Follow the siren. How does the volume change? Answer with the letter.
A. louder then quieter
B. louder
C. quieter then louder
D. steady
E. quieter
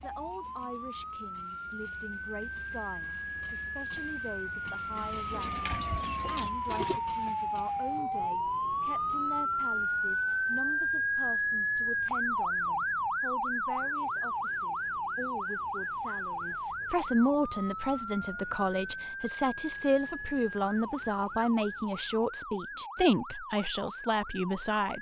A.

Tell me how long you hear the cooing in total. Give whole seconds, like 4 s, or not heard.
2 s.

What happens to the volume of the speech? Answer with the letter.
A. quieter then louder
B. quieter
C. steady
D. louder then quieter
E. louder
E.